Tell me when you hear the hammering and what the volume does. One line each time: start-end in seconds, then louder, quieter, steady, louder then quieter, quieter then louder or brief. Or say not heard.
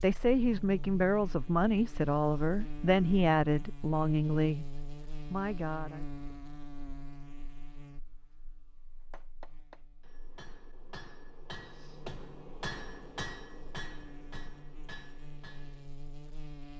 9.0-15.9 louder then quieter.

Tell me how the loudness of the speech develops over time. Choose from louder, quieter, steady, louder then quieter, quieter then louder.
quieter.